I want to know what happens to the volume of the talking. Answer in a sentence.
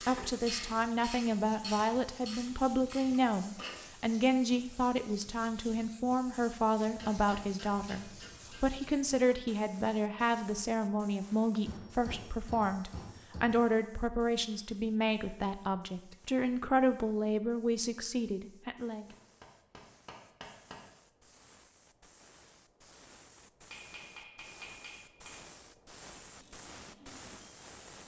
The loudness of the talking stays about the same.